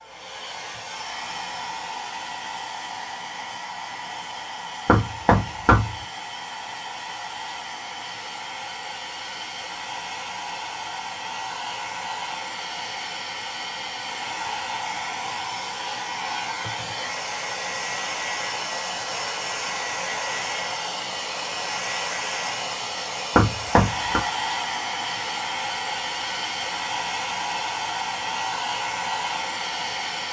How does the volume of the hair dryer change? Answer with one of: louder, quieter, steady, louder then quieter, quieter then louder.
louder.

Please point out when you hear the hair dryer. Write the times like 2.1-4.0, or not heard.
0.0-30.2.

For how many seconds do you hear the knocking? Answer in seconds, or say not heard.
2 s.